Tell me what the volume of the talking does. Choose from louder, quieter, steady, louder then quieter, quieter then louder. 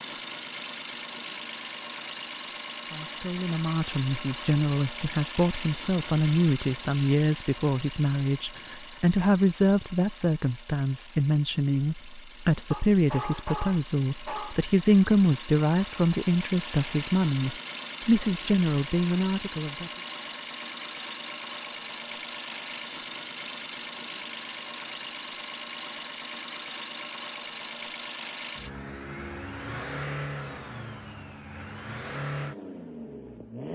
steady.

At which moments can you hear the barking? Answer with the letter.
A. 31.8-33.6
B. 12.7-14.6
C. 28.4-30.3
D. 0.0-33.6
B.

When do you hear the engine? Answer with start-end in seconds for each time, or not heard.
0.0-33.6.